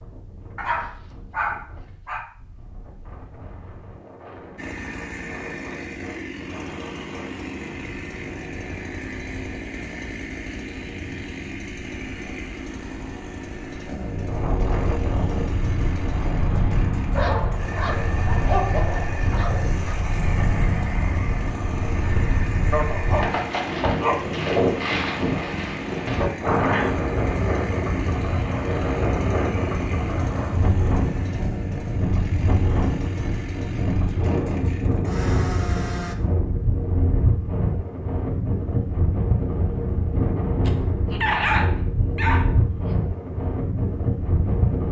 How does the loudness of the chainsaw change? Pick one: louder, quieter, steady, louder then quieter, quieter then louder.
steady.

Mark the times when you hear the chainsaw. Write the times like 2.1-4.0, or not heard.
4.5-36.1.